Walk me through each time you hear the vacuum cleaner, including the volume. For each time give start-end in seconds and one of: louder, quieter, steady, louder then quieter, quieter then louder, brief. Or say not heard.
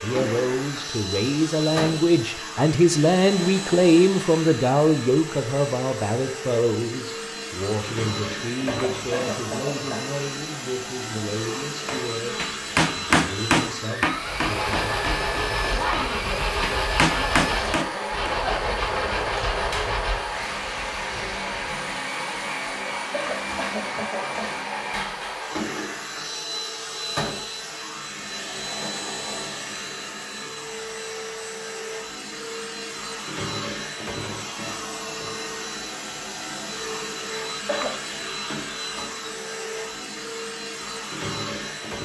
0.0-42.0 steady.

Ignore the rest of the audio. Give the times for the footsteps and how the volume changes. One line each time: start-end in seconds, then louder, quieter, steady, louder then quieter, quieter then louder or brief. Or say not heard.
not heard.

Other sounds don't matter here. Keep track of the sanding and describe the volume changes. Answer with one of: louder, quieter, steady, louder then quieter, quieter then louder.
steady.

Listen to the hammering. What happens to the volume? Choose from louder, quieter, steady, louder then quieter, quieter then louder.
quieter then louder.